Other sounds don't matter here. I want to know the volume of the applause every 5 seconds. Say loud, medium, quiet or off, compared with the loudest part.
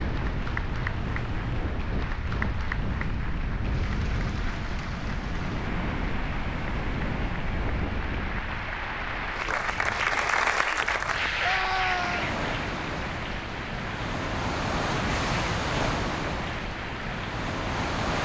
medium, medium, loud, medium.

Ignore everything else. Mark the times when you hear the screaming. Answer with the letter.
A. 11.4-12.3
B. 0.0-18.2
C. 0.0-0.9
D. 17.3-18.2
A.